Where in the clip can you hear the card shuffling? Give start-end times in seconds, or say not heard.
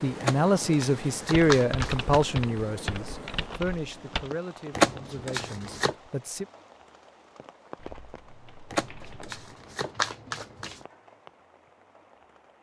0.2-2.2, 4.7-6.0, 8.7-10.8.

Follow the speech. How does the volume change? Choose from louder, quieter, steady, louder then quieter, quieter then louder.
quieter.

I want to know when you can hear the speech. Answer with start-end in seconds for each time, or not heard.
0.0-6.5.